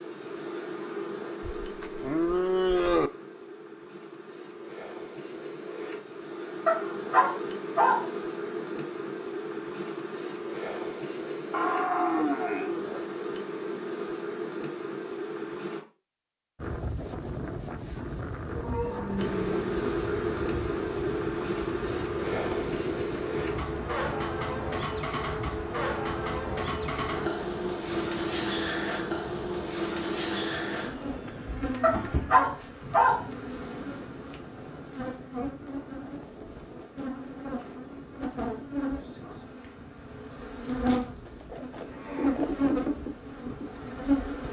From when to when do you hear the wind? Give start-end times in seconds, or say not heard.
16.6-44.4.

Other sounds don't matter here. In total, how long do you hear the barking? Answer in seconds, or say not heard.
3 s.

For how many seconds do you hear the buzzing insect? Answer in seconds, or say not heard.
41 s.